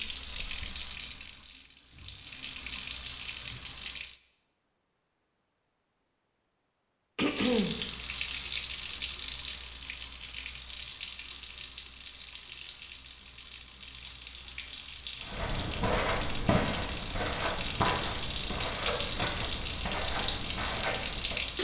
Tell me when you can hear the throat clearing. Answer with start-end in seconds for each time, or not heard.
7.2-7.8.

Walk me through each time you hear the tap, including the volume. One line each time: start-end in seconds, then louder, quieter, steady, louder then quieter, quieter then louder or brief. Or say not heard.
0.0-4.2 quieter then louder
7.2-21.5 quieter then louder.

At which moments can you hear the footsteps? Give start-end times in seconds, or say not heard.
15.2-21.4.